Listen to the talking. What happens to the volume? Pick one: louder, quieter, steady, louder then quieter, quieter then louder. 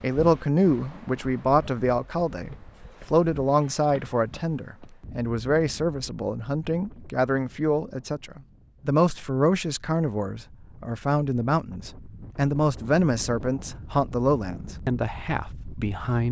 steady.